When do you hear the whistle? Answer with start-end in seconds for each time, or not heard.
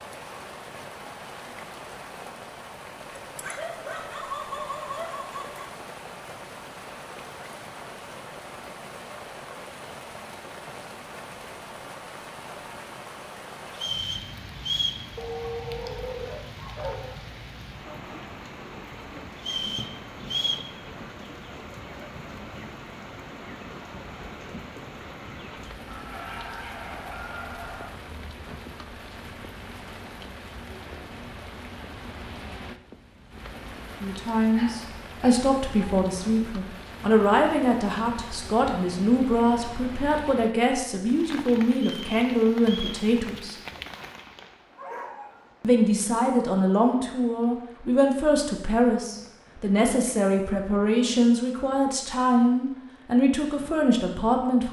13.7-15.1, 19.4-20.7, 41.8-43.0.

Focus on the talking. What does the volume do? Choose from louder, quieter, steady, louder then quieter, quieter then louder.
steady.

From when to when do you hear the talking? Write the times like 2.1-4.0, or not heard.
34.0-43.5, 45.6-54.6.